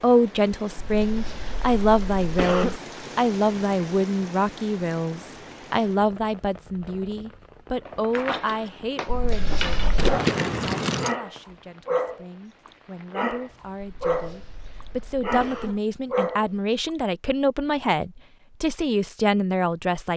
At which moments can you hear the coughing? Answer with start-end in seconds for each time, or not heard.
0.8-2.8, 9.1-10.2, 13.8-15.8.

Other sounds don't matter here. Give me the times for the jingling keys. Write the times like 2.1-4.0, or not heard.
9.9-11.2.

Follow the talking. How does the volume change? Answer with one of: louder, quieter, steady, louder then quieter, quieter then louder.
quieter then louder.